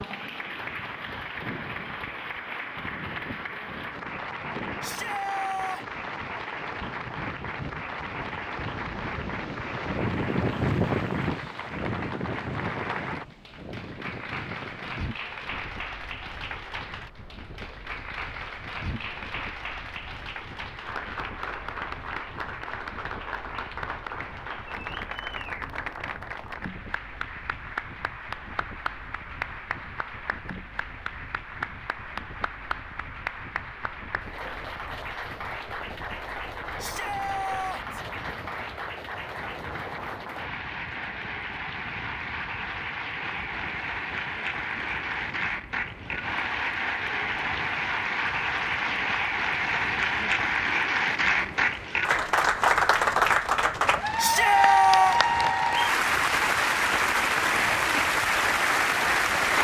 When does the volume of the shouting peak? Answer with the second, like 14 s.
55 s.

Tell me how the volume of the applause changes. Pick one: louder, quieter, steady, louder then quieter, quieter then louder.
louder.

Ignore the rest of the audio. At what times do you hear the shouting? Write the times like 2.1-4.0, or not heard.
4.8-5.8, 36.8-38.0, 54.1-55.2.